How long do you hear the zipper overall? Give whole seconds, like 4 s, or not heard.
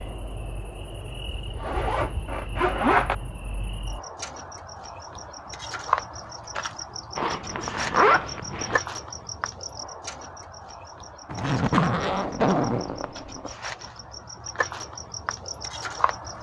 6 s.